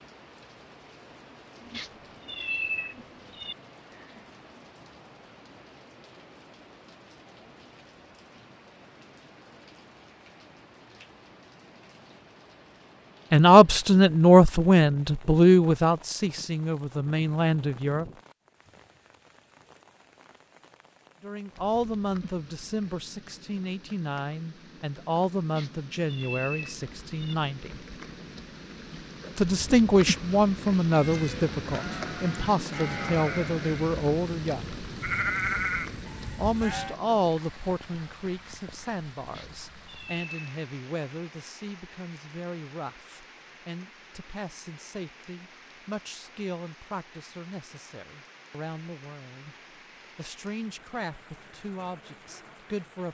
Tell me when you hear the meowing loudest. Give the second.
3 s.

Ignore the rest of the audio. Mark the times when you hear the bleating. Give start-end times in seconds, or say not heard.
30.9-37.0.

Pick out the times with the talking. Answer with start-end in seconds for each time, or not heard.
13.3-18.1, 21.2-27.7, 29.4-34.6, 36.4-49.5, 50.1-53.0.